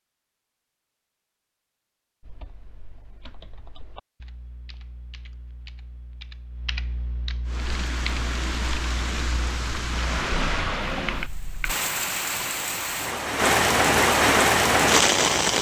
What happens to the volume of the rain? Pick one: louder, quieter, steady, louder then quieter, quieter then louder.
louder.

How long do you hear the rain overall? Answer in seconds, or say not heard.
8 s.